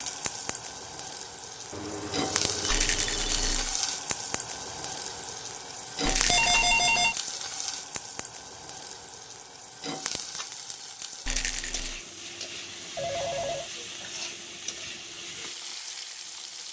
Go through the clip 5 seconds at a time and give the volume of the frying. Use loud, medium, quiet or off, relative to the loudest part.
loud, loud, medium, medium.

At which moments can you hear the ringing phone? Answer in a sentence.
The ringing phone can be heard from 1.7 to 3.7 s, from 6.2 to 7.2 s and from 12.9 to 13.7 s.